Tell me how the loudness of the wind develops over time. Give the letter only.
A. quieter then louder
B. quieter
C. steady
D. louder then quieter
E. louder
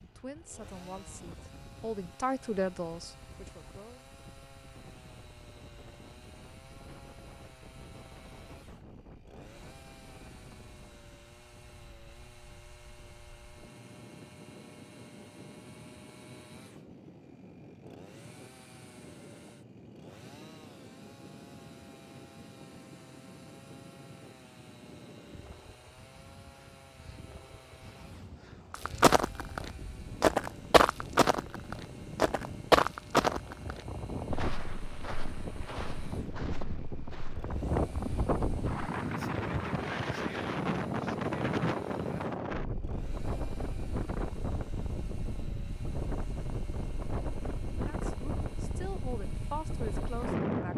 E.